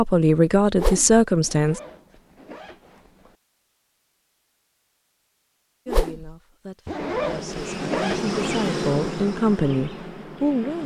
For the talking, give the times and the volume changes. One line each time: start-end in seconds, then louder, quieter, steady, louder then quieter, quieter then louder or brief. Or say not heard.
0.0-1.8 brief
5.8-10.8 louder.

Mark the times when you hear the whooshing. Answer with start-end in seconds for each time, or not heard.
0.8-1.2, 5.8-6.3.